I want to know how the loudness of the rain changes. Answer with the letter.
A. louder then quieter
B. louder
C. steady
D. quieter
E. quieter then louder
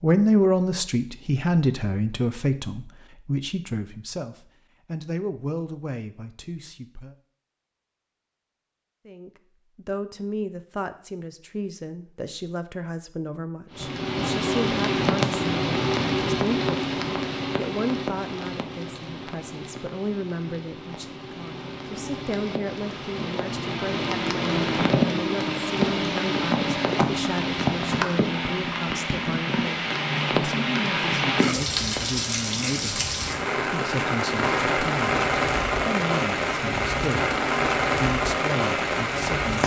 E.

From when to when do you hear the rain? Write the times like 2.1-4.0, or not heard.
13.7-39.6.